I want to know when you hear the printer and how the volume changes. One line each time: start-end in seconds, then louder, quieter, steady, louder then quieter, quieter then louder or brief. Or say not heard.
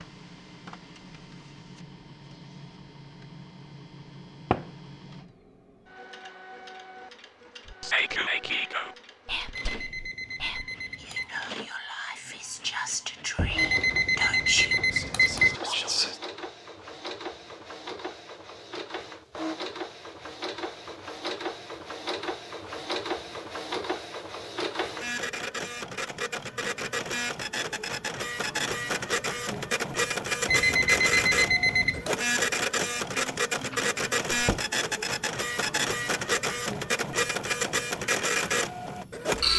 0.0-39.5 louder.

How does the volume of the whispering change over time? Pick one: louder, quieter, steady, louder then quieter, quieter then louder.
quieter then louder.